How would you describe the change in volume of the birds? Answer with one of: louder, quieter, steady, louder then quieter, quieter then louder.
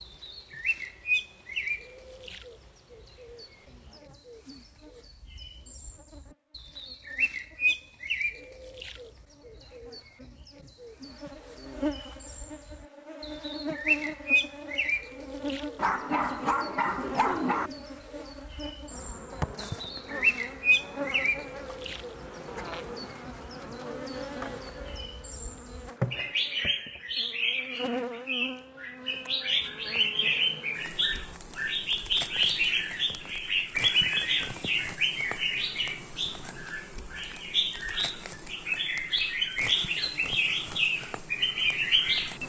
louder.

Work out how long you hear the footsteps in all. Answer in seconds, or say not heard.
not heard.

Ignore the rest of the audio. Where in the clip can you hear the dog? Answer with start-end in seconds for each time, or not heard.
15.8-17.7.